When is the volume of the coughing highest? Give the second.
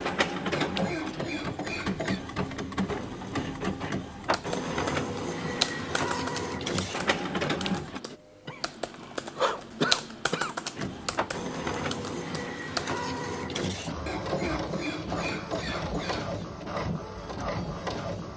10 s.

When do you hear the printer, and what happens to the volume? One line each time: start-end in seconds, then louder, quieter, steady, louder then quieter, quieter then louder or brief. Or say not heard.
0.0-8.0 steady
10.8-18.3 steady.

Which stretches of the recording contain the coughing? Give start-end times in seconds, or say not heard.
0.5-2.2, 8.1-10.6, 14.1-16.4.